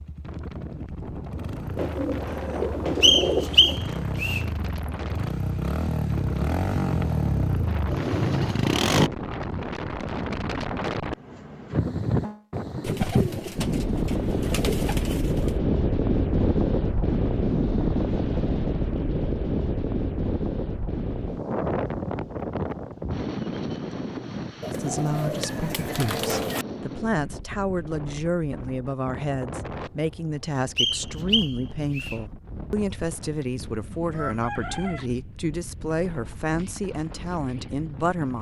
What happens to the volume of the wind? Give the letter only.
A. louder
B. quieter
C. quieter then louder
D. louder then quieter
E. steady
D.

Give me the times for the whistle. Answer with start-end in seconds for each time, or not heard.
3.0-4.5, 30.8-32.2.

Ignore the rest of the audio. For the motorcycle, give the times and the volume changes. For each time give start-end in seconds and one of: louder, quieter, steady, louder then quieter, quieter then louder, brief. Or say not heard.
0.0-9.1 louder.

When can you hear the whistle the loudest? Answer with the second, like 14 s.
3 s.